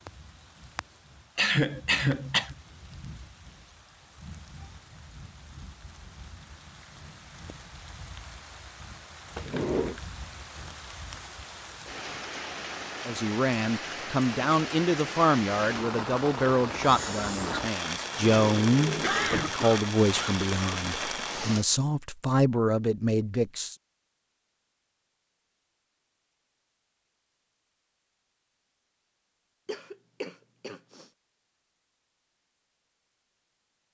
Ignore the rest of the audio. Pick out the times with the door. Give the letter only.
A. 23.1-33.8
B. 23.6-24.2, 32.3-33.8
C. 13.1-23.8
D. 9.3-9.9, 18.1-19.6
D.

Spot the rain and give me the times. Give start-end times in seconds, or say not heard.
0.0-21.6.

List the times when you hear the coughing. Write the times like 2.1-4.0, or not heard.
1.4-2.5, 19.0-20.8, 29.6-31.1.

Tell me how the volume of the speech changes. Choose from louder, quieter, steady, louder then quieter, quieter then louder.
steady.